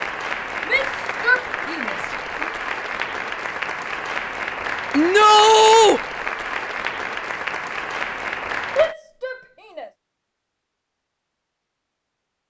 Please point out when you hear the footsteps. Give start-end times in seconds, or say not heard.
not heard.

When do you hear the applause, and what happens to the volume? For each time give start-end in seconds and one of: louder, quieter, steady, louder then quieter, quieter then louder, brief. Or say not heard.
0.0-8.9 steady.